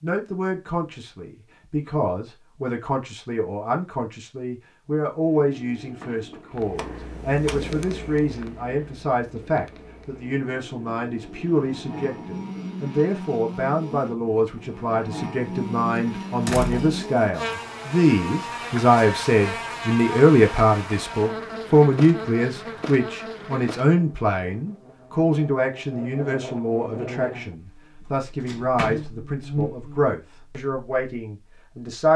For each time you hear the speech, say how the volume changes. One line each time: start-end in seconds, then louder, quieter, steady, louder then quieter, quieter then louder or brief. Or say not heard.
0.0-32.1 louder then quieter.